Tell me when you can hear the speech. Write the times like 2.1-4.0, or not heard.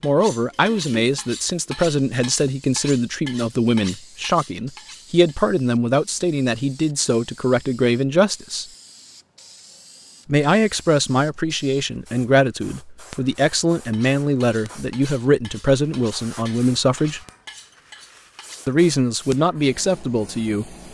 0.0-8.7, 10.2-17.2, 18.6-20.8.